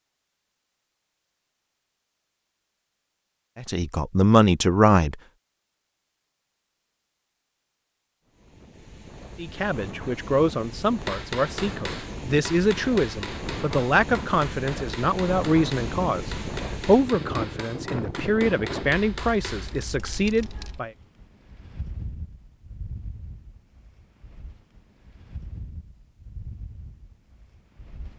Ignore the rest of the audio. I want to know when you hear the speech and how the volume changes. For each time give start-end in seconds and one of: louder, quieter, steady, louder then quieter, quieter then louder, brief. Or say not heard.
3.5-5.2 brief
9.3-20.9 steady.